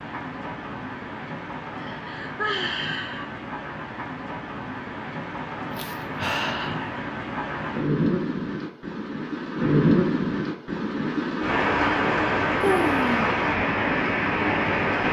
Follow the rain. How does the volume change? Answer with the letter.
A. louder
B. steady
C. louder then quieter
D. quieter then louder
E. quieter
A.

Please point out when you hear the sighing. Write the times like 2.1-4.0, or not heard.
1.8-3.4, 5.8-7.0, 12.6-13.2.